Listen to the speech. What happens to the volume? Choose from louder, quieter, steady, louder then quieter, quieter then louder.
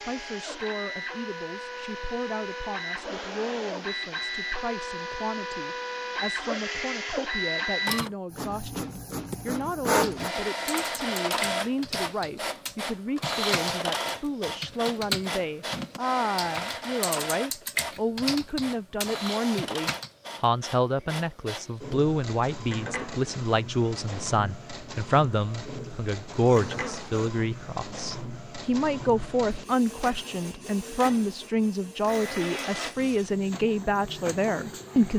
louder.